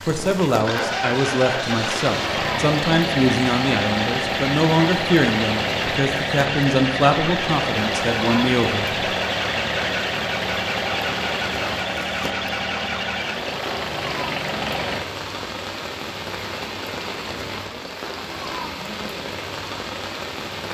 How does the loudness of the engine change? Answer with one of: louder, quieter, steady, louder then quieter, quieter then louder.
steady.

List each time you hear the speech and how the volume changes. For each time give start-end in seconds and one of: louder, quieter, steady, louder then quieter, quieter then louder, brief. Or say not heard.
0.1-8.9 steady.